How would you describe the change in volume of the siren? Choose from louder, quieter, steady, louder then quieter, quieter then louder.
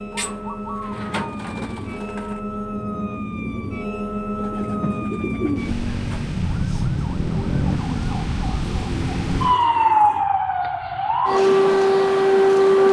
louder.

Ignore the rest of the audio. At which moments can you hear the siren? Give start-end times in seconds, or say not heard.
0.0-12.8.